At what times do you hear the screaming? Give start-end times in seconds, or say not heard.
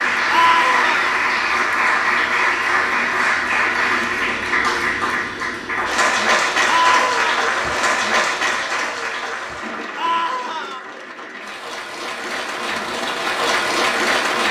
0.3-1.1, 6.7-7.5, 9.9-10.8.